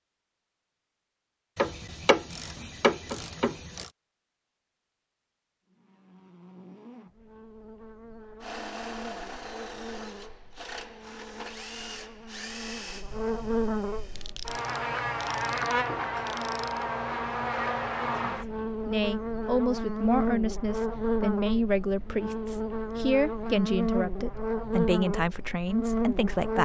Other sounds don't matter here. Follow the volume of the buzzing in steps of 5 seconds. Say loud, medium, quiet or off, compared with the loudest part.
off, quiet, medium, loud, loud, loud.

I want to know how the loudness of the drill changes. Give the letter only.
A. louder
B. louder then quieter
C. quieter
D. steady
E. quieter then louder
C.